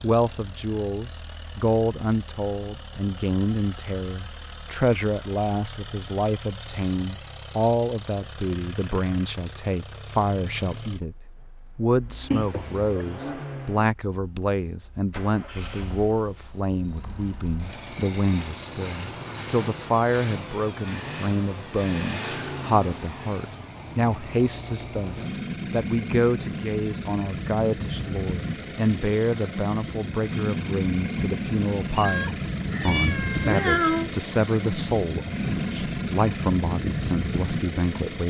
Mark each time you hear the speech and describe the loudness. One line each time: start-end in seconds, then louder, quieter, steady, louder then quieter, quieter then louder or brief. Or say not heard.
0.0-11.2 steady
11.8-38.2 steady.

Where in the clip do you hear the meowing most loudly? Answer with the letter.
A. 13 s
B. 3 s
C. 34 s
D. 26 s
C.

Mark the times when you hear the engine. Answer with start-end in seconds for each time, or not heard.
0.0-38.2.